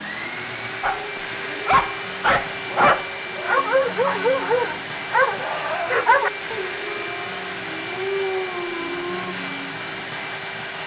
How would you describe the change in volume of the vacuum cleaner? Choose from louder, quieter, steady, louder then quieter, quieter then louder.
steady.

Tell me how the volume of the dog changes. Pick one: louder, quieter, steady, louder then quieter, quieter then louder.
quieter.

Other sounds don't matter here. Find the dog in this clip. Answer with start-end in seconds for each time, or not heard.
0.8-9.3.